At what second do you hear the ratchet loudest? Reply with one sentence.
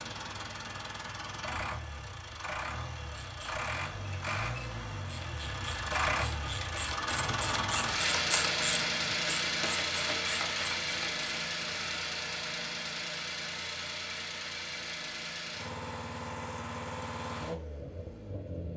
The volume of the ratchet peaks at 8 seconds.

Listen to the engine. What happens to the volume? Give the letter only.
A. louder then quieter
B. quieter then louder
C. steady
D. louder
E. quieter
A.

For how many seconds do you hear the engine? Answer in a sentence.
You can hear the engine for 19 seconds altogether.